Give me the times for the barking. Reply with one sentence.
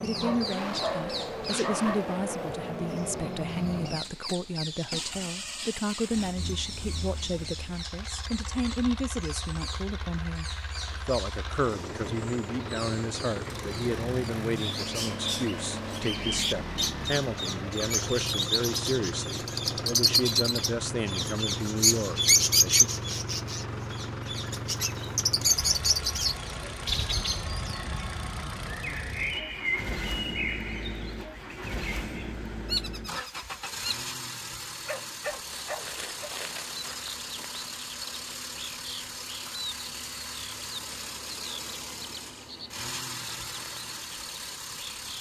You can hear the barking from 0.1 to 1.9 s and from 34.9 to 36.3 s.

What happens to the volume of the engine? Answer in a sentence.
The loudness of the engine stays about the same.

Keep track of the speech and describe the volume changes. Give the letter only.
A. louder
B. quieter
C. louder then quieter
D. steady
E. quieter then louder
D.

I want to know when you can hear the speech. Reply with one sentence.
The speech can be heard from 0.0 to 22.9 s.